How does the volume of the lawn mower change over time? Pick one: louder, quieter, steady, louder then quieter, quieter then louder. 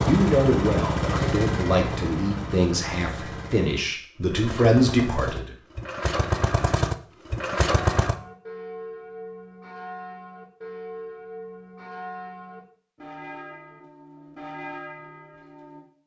quieter then louder.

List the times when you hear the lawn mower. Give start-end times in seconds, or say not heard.
0.0-8.2.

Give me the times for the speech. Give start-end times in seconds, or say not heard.
0.0-5.5.